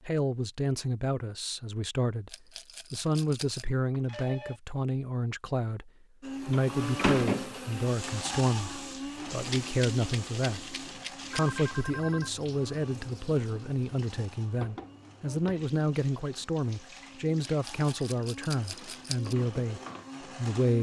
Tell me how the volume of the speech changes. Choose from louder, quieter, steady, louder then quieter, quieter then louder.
steady.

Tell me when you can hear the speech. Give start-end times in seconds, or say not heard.
0.1-10.6, 11.3-20.7.